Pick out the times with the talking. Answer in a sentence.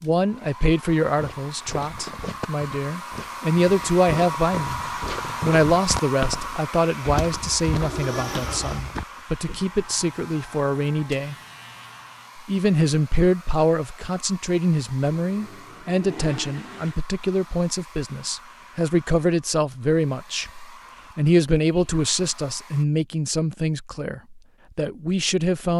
The talking can be heard from 0.0 to 4.8 s, from 5.4 to 11.3 s and from 12.3 to 25.7 s.